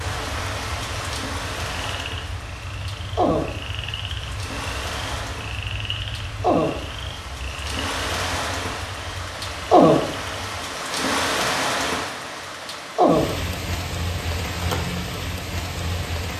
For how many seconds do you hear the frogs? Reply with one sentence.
You can hear the frogs for 11 seconds altogether.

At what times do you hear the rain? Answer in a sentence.
The rain can be heard from 0.0 to 16.3 s.